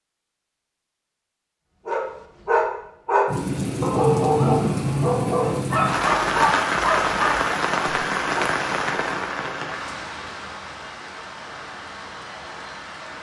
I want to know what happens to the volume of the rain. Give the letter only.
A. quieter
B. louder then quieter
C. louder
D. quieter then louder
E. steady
A.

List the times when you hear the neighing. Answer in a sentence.
You can't hear the neighing here.